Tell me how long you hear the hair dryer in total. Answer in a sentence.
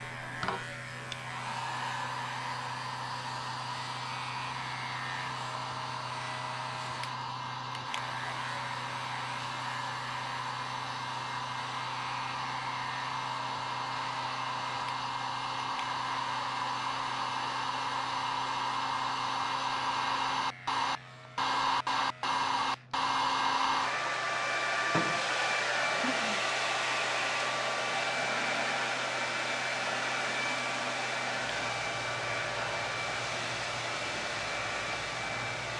You can hear the hair dryer for 36 seconds altogether.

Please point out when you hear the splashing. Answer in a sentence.
The splashing can't be heard in this clip.